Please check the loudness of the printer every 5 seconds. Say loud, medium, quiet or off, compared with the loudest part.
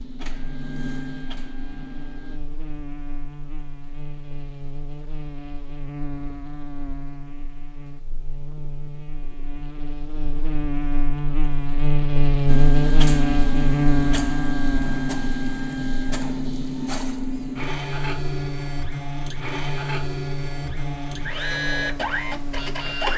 medium, off, loud, loud, loud.